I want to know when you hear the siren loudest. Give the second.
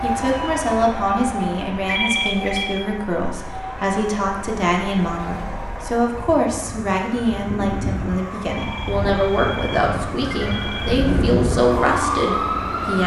12 s.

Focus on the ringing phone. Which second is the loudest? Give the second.
2 s.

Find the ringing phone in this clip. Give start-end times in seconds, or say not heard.
1.9-2.8, 8.5-11.1.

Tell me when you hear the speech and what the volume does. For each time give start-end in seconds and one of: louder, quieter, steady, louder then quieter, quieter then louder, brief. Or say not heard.
0.0-13.0 steady.